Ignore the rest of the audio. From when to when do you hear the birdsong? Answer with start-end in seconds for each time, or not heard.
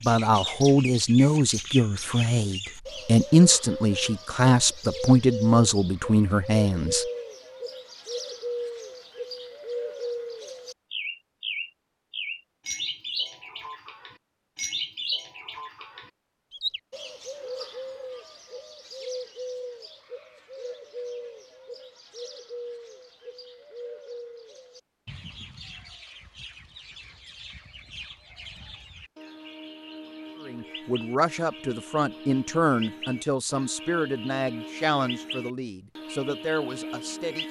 0.0-37.4.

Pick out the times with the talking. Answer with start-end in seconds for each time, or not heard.
0.0-7.0, 30.4-37.4.